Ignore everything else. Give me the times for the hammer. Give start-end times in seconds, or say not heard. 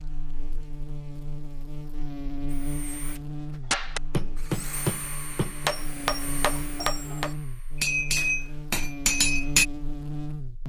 3.7-9.7.